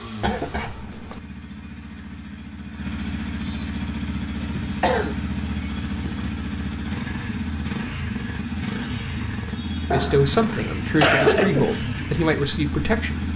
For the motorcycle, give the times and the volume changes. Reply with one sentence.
The motorcycle can be heard from 0.0 to 13.3 s, getting louder.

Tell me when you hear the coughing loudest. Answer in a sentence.
The volume of the coughing peaks at 11 seconds.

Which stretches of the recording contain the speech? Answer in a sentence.
You can hear the speech from 9.9 to 13.3 s.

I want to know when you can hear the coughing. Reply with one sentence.
The coughing can be heard from 0.2 to 1.2 s, from 4.6 to 6.3 s and from 9.9 to 11.7 s.